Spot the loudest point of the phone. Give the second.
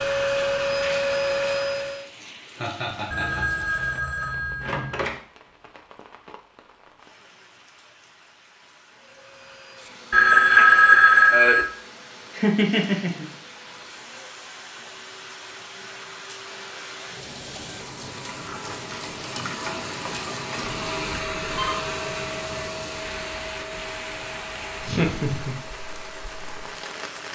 11 s.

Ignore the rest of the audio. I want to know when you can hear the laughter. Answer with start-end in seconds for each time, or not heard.
2.5-3.7, 12.3-13.2, 24.9-25.6.